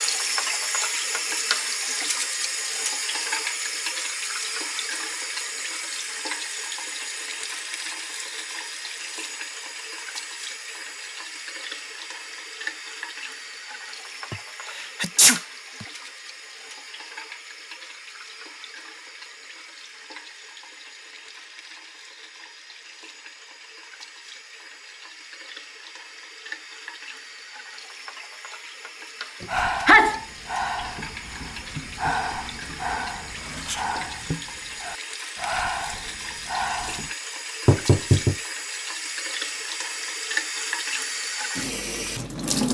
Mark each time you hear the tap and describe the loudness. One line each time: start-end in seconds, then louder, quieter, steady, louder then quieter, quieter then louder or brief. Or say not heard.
0.0-42.7 quieter then louder.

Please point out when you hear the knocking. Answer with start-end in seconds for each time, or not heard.
37.6-38.4.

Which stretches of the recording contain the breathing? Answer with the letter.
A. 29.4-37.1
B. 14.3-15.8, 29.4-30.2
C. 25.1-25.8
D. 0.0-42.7
A.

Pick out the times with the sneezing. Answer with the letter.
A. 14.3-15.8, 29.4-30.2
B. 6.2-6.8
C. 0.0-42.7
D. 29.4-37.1
A.